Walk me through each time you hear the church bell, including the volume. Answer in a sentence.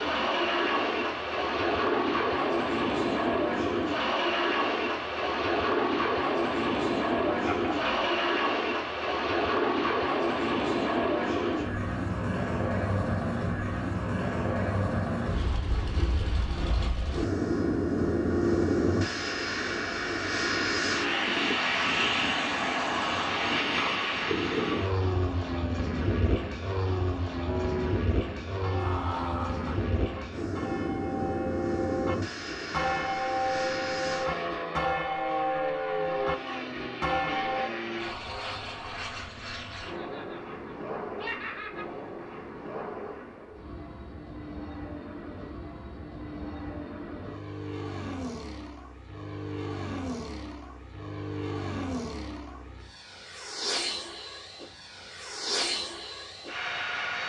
The church bell can be heard from 27.4 to 37.7 s, getting louder.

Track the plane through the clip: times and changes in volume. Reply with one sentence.
You can hear the plane from 0.0 to 57.2 s, getting quieter.